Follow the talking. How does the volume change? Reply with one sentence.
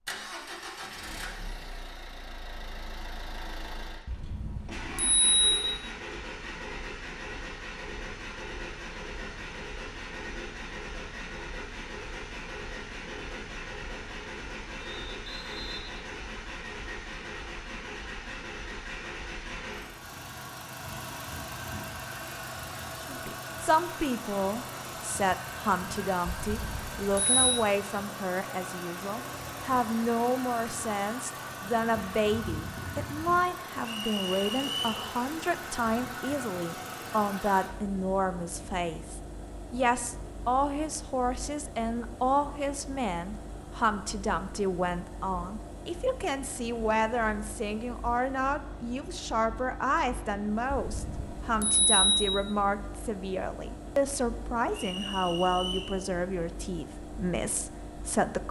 The loudness of the talking stays about the same.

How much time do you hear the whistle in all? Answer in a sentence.
You can hear the whistle for 4 seconds altogether.